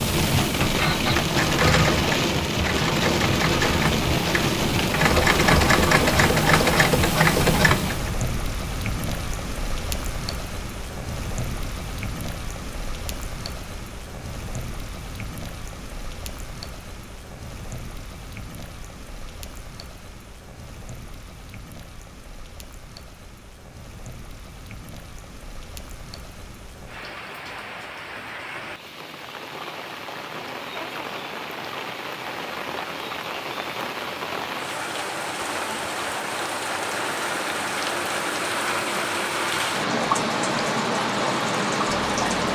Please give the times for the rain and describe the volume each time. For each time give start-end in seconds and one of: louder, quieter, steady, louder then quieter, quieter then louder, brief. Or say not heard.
0.0-42.5 quieter then louder.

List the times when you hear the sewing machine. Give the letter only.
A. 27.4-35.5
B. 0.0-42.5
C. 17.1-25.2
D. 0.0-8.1
D.